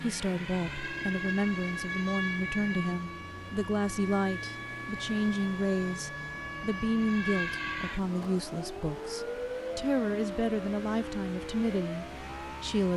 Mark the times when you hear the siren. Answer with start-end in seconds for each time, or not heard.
0.0-12.9.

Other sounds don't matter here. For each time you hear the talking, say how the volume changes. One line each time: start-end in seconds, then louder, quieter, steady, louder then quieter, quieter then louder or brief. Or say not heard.
0.0-12.9 steady.